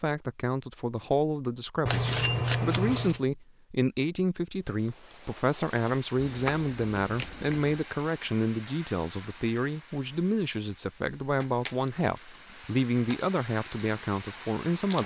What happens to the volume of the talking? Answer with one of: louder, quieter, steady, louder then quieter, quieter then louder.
steady.